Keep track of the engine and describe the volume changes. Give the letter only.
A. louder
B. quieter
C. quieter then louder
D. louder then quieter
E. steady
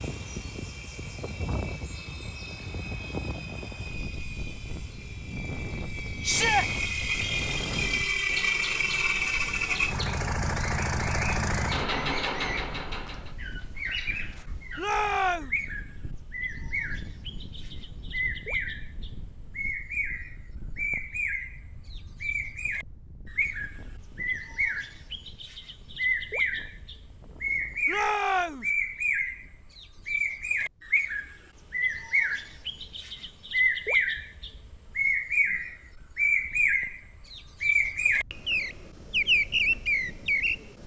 A.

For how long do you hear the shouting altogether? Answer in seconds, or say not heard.
2 s.